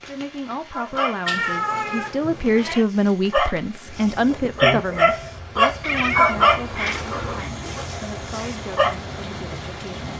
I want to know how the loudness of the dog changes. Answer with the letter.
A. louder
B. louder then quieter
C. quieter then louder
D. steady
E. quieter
B.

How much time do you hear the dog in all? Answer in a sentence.
You can hear the dog for 8 seconds altogether.